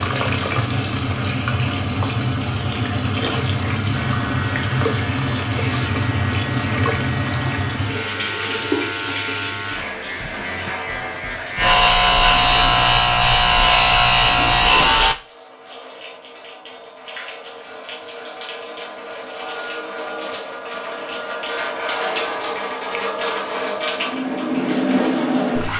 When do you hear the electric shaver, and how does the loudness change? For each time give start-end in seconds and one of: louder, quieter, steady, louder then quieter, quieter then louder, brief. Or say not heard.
3.9-15.2 louder.